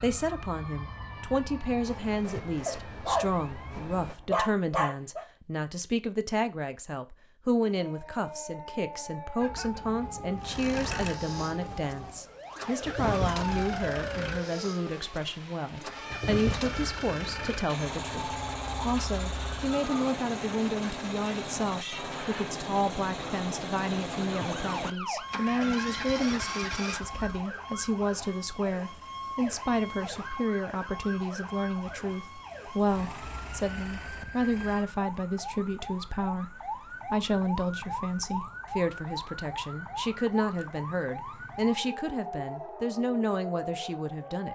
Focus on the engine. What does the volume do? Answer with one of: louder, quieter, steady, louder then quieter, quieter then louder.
steady.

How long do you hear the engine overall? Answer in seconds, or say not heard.
17 s.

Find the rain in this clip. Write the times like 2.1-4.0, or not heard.
not heard.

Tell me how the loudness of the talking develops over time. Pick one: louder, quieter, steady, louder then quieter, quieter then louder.
steady.